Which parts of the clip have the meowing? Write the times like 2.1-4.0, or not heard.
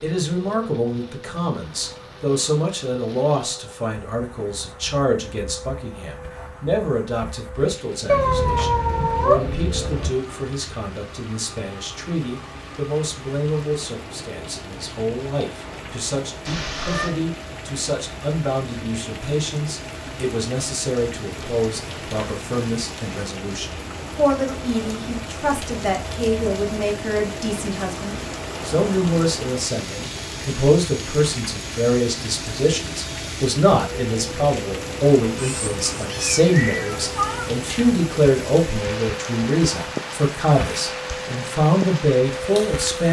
8.1-10.1, 16.4-17.1, 35.4-37.5.